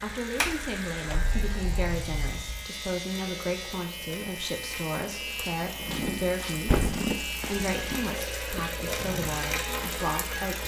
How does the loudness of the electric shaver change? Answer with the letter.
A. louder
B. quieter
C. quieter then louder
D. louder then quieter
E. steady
E.